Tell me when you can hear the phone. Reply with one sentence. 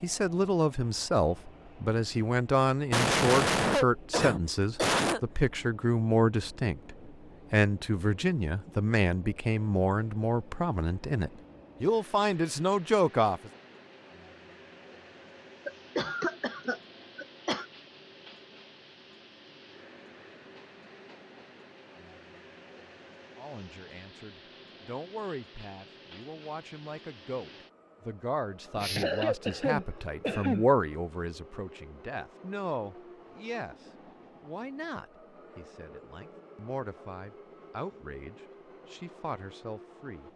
The phone can't be heard in this clip.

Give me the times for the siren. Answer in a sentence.
The siren can't be heard in this clip.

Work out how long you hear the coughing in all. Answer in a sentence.
The coughing can be heard for 6 seconds in total.